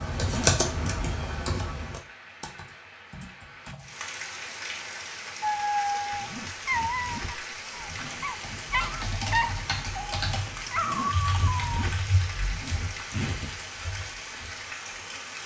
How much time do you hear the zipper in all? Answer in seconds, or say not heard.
6 s.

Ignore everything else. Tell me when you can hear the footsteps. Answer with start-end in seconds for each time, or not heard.
not heard.